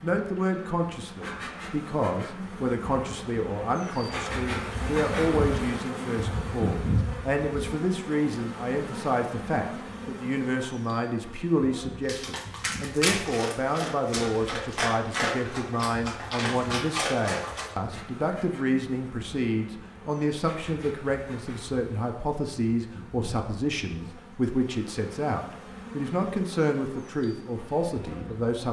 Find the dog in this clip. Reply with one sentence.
You can hear the dog from 12.1 to 17.8 s.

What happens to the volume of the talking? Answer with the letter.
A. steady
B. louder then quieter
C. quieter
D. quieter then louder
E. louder
A.